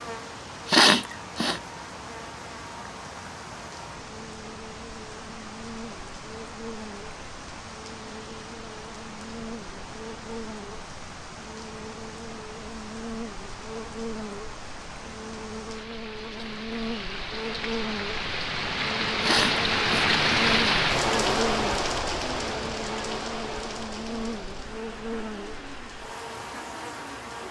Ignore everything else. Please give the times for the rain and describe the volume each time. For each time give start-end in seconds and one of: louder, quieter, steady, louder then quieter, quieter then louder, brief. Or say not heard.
0.0-27.4 louder then quieter.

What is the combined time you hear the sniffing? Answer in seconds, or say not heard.
2 s.